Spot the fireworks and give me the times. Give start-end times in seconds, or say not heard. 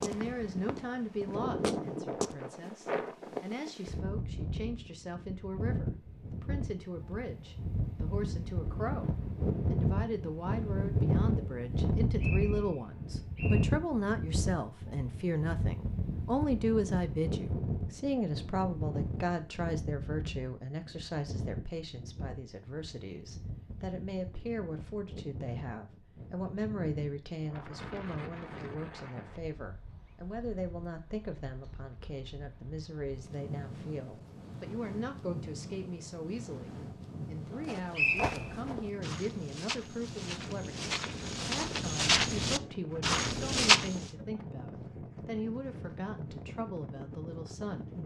not heard.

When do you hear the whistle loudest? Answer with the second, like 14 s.
38 s.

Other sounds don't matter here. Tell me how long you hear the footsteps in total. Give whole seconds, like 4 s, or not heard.
9 s.